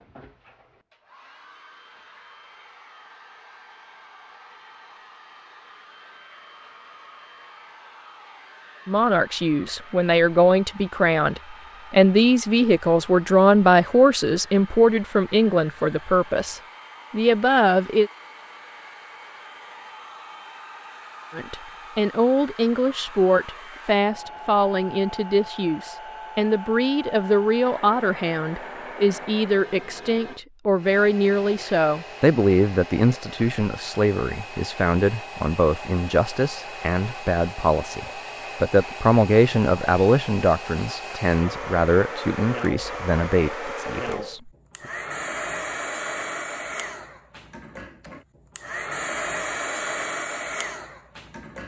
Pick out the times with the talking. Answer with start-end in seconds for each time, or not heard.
8.8-18.1, 21.4-44.5.